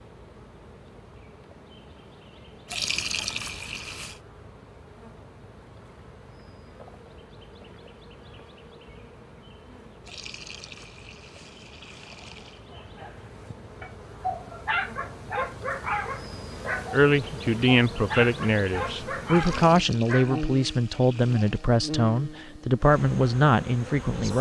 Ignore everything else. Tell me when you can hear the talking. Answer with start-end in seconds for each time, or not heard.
16.9-24.3.